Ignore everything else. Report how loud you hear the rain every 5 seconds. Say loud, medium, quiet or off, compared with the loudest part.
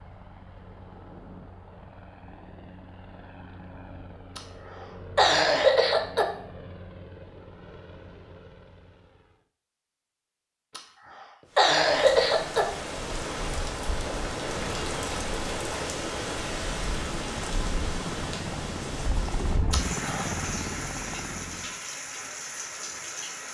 off, off, loud, loud, loud.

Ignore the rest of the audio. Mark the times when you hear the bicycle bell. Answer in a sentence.
You can't hear the bicycle bell here.